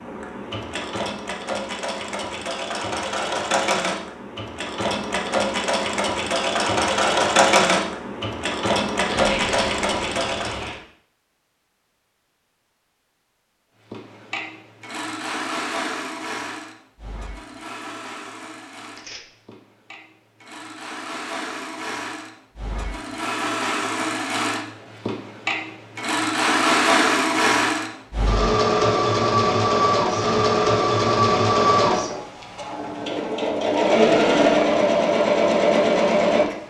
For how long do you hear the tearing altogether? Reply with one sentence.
You can hear the tearing for 2 seconds altogether.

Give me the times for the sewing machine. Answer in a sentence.
The sewing machine can be heard from 0.0 to 10.8 s and from 13.9 to 36.5 s.